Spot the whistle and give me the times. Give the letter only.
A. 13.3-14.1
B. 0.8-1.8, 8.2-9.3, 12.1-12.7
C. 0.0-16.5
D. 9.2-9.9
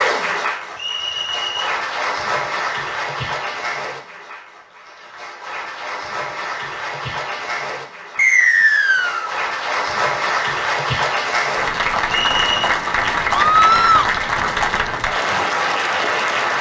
B.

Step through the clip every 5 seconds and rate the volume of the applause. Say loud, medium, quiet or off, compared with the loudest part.
medium, medium, loud, loud.